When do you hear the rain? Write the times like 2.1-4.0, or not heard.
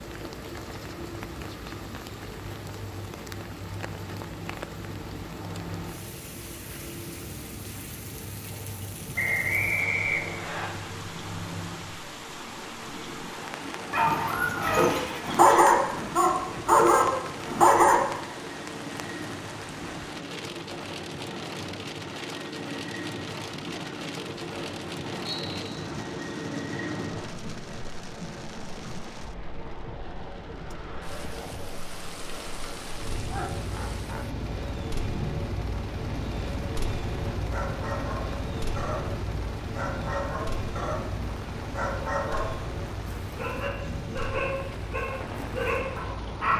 0.0-46.5.